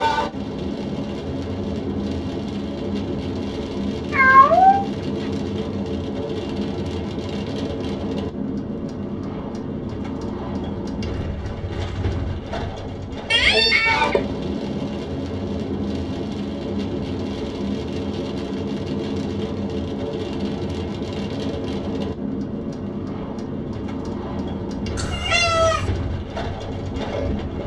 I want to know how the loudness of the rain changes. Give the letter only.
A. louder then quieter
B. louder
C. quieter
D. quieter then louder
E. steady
E.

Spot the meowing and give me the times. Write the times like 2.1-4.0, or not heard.
4.1-4.8, 13.3-14.3, 24.9-25.9.